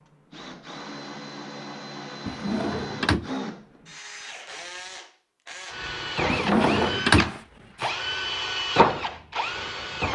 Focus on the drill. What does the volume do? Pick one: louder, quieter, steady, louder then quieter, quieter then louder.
louder.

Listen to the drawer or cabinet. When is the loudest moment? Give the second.
7 s.